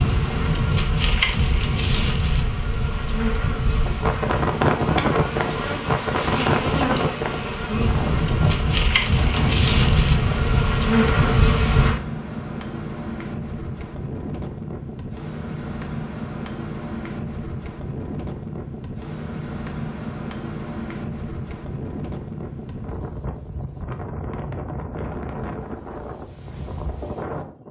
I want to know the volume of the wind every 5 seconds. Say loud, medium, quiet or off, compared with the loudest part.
loud, loud, medium, medium, medium, medium.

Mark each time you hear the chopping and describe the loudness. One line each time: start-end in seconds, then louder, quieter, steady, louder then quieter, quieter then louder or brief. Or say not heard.
not heard.